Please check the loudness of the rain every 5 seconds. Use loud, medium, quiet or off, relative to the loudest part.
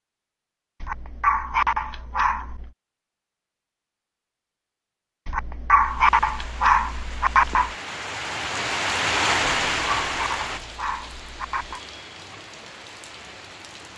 off, loud, medium.